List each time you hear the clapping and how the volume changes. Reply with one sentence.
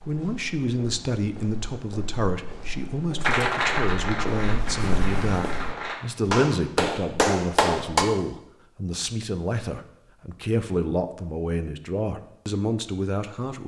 The clapping can be heard from 3.2 to 8.1 s, getting quieter then louder.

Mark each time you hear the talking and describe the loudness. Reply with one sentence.
The talking can be heard from 0.1 to 13.6 s, at a steady volume.